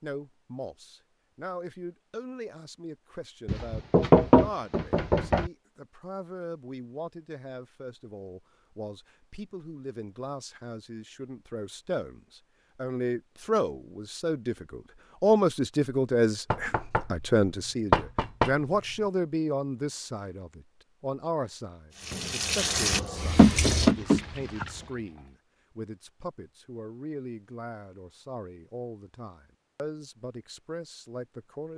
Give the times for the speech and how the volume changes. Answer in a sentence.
The speech can be heard from 0.0 to 31.7 s, getting louder then quieter.